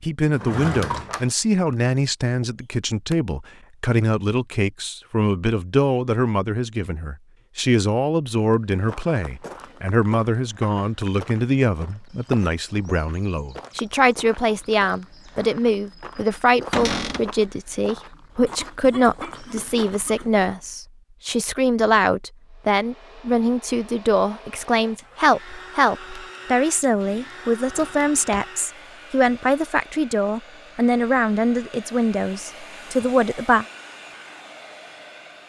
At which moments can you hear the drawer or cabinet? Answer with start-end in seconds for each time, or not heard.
0.3-1.8, 16.7-17.3, 26.9-28.4.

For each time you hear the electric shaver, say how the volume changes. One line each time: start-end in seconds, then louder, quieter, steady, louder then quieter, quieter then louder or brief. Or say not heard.
not heard.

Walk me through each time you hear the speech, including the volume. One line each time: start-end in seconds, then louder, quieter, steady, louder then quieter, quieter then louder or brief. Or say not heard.
0.0-33.6 steady.